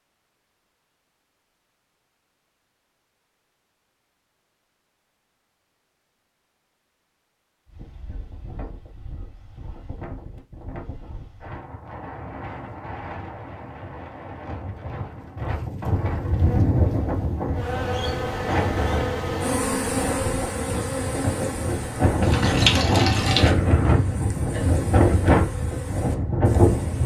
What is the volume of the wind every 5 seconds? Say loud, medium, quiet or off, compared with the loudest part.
off, quiet, quiet, medium, loud, loud.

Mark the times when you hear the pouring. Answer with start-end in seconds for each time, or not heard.
22.1-23.6.